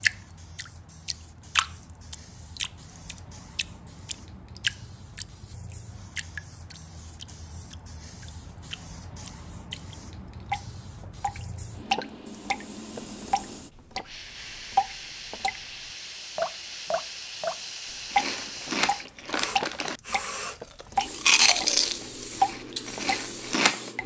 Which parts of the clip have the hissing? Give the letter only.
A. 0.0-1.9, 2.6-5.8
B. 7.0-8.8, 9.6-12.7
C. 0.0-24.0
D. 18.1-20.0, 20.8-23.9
C.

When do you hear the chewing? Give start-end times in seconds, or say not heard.
18.1-20.0, 20.8-23.9.